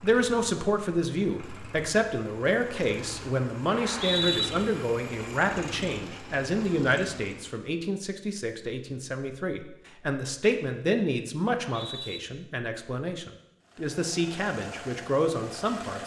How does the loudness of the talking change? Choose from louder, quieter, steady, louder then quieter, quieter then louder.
steady.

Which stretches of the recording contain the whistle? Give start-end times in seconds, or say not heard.
3.7-4.5, 11.5-12.2.